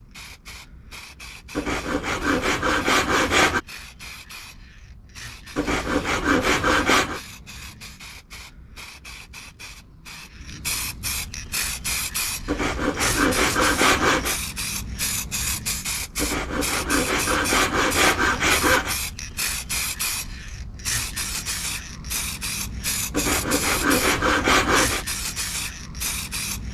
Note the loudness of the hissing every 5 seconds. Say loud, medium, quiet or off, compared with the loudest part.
quiet, quiet, loud, loud, loud, loud.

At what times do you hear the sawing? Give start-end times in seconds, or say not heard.
1.6-3.6, 5.5-7.2, 12.4-14.4, 16.1-18.9, 23.1-25.1.